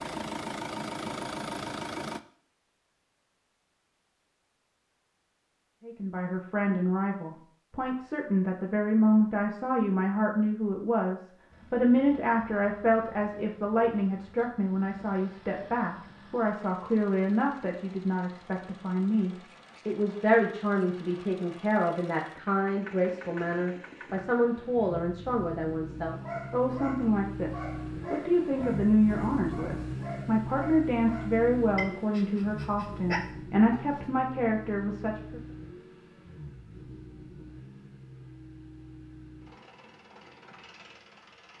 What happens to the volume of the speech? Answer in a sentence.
The loudness of the speech stays about the same.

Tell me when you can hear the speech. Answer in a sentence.
The speech can be heard from 5.8 to 35.4 s.